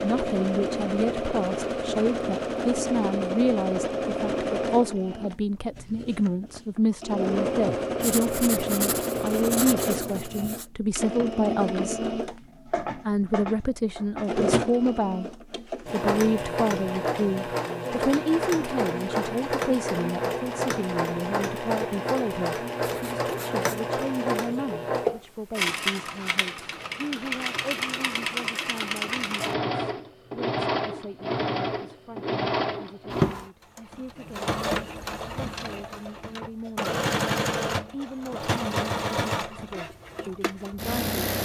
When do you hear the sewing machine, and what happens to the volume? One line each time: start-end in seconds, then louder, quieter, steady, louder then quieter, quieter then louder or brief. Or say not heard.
0.0-41.4 steady.